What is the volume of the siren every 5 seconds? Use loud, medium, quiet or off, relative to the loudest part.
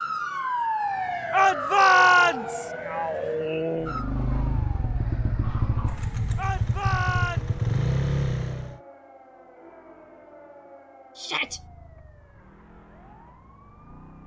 loud, quiet, quiet.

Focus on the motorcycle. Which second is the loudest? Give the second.
8 s.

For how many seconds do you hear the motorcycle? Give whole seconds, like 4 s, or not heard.
5 s.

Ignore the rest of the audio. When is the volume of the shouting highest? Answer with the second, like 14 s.
2 s.